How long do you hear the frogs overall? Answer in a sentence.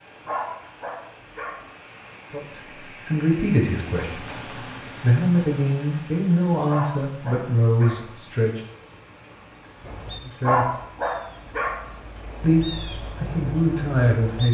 You can't hear the frogs here.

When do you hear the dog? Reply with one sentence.
The dog can be heard from 0.2 to 1.6 s, from 6.7 to 8.1 s and from 10.4 to 11.8 s.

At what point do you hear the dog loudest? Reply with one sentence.
The loudest moment of the dog is at 11 seconds.